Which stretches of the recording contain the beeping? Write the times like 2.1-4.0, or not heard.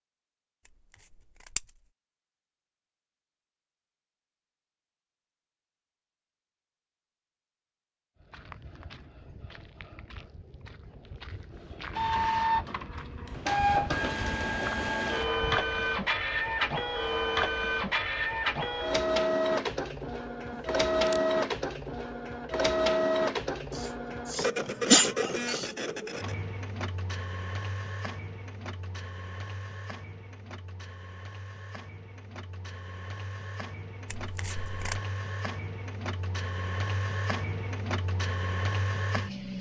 not heard.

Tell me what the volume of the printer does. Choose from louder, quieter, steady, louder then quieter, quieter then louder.
quieter then louder.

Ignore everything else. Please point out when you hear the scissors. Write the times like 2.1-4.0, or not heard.
1.1-1.6, 20.5-21.2, 34.0-35.0.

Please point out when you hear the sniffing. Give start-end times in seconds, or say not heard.
23.8-25.7.